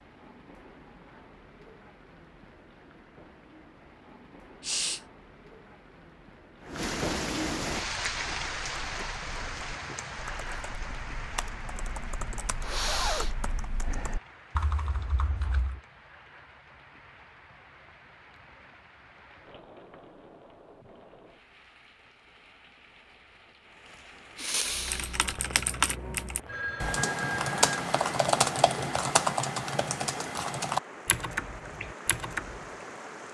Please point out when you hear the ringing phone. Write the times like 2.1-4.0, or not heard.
26.4-27.8.